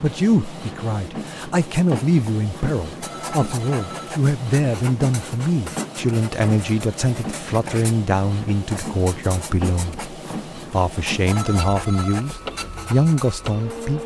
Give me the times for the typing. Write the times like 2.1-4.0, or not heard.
not heard.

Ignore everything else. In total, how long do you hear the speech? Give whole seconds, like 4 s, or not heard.
14 s.